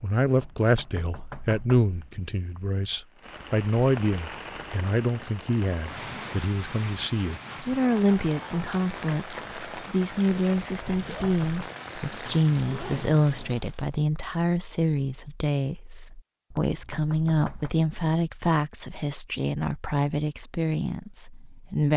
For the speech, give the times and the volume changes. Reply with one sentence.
The speech can be heard from 0.0 to 21.9 s, at a steady volume.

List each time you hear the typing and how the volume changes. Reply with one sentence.
You can't hear the typing here.